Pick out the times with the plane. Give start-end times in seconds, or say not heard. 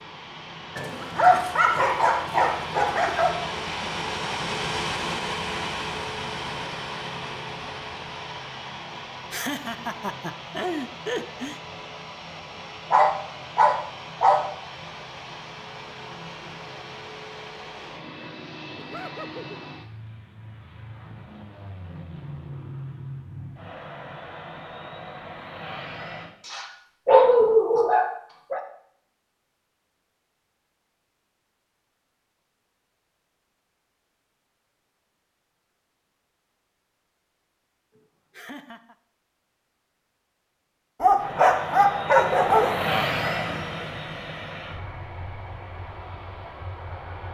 0.0-26.4, 41.1-47.2.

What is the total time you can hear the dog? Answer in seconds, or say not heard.
8 s.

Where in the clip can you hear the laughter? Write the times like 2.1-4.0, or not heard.
8.9-11.6, 18.8-19.4, 38.0-39.0.